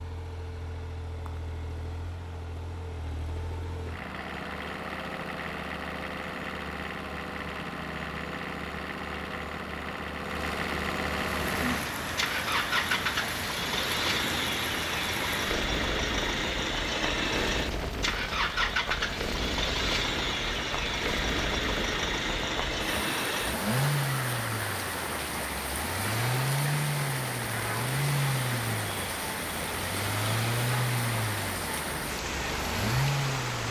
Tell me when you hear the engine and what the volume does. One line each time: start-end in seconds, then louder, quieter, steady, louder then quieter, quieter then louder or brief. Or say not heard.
0.0-33.6 louder.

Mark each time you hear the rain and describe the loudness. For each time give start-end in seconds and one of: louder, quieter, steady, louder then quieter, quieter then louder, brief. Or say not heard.
11.2-33.6 steady.